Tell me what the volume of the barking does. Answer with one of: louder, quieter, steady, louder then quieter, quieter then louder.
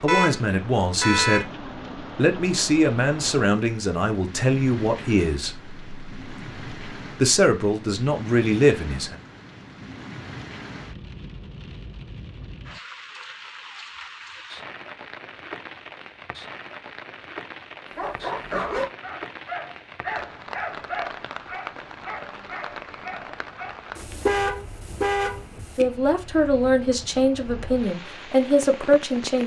quieter.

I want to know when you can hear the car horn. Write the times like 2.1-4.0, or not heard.
0.1-1.4, 23.9-25.9.